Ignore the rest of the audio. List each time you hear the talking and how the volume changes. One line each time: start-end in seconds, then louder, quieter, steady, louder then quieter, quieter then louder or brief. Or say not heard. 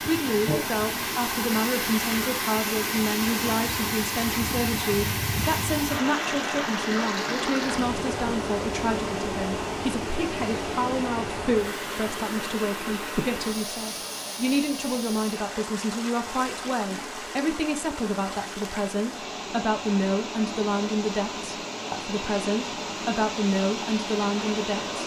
0.1-25.0 steady.